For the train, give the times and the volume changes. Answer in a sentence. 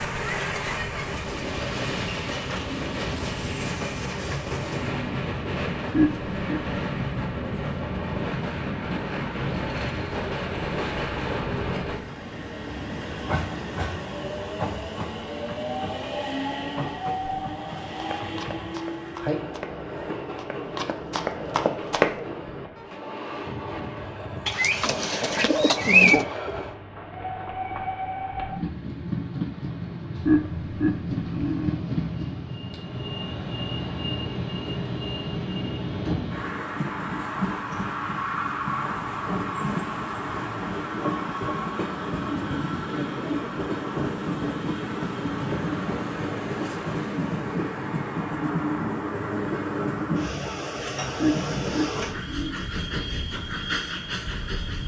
You can hear the train from 0.0 to 54.8 s, at a steady volume.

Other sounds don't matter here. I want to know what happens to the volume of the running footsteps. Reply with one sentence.
The volume of the running footsteps goes down, then up.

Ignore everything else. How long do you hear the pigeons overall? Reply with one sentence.
You can hear the pigeons for 2 seconds altogether.